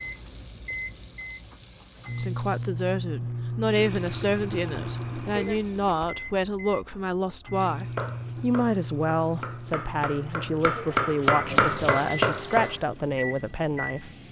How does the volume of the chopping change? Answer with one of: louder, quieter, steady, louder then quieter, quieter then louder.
louder.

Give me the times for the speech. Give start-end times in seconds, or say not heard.
2.1-14.1.